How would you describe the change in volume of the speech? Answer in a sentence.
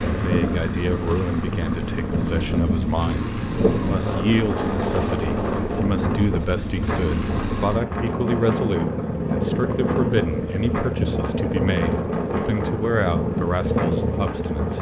The volume of the speech stays about the same.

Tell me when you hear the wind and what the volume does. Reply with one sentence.
The wind can be heard from 0.0 to 14.7 s, at a steady volume.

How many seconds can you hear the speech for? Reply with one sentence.
The speech can be heard for 15 seconds in total.